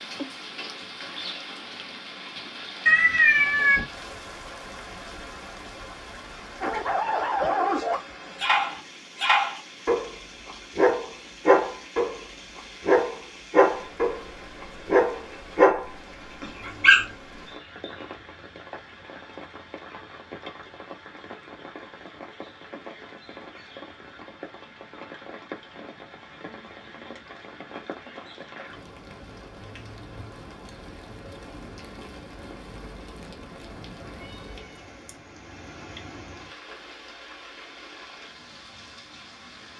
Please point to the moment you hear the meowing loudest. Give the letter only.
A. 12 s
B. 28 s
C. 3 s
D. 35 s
C.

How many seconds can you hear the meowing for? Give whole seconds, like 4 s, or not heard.
2 s.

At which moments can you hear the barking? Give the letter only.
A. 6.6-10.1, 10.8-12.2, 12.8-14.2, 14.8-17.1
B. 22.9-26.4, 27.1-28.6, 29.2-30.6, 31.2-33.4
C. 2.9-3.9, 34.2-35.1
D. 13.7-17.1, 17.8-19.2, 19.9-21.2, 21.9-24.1
A.